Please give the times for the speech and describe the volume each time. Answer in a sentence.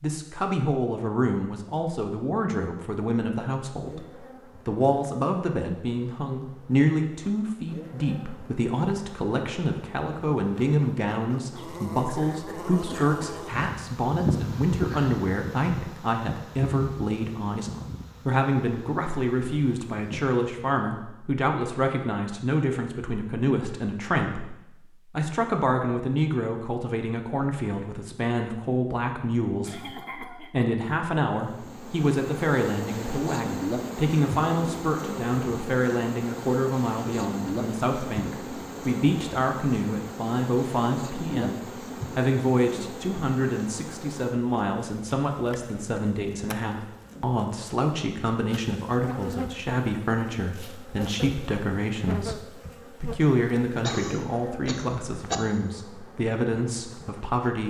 You can hear the speech from 0.0 to 57.6 s, at a steady volume.